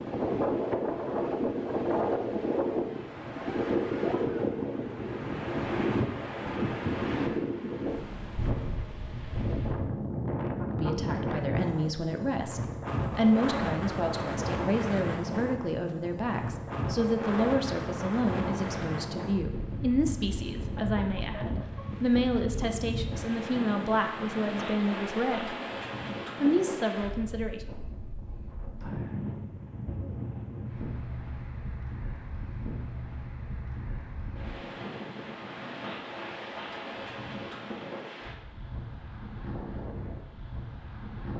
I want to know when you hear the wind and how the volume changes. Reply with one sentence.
The wind can be heard from 0.0 to 41.3 s, getting quieter.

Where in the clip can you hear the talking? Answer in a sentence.
You can hear the talking from 10.7 to 25.6 s and from 26.4 to 27.6 s.